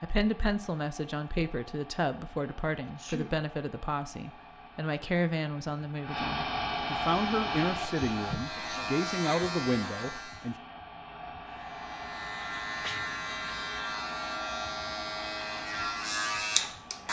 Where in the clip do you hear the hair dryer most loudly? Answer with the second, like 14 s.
7 s.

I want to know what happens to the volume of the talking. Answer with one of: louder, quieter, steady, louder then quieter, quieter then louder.
steady.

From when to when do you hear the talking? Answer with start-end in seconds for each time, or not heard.
0.0-10.6.